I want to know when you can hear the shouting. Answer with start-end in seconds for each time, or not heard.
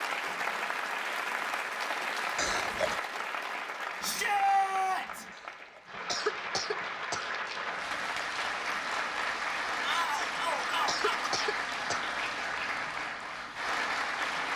4.0-5.2, 9.8-11.3.